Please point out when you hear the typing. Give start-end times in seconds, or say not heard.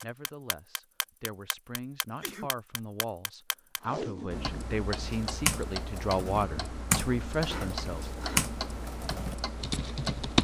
5.0-10.3.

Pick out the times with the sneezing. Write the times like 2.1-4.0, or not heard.
2.0-2.5, 7.4-8.5.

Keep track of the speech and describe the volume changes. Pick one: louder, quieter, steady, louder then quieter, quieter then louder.
louder.